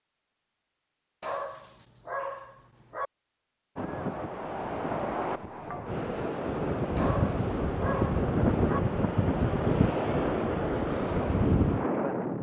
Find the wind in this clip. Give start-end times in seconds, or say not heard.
3.8-12.3.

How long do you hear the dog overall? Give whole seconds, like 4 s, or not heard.
4 s.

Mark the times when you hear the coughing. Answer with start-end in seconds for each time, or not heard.
not heard.